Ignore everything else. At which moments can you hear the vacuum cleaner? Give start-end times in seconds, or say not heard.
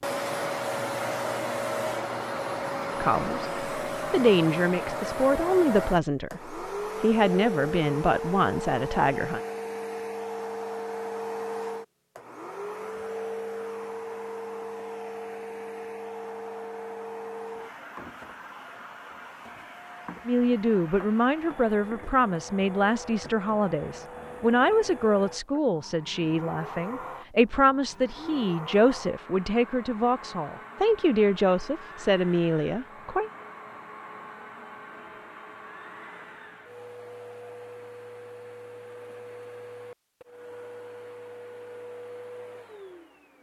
0.0-43.3.